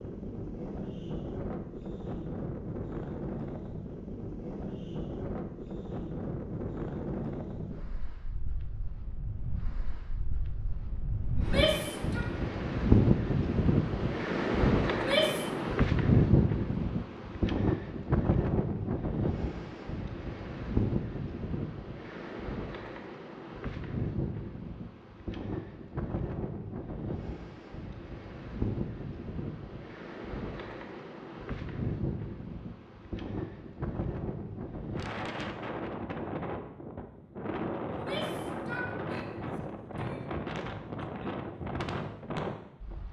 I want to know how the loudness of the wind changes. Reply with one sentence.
The volume of the wind goes up, then down.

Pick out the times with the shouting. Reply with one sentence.
You can hear the shouting from 11.3 to 12.2 s, from 14.9 to 15.4 s and from 37.9 to 40.2 s.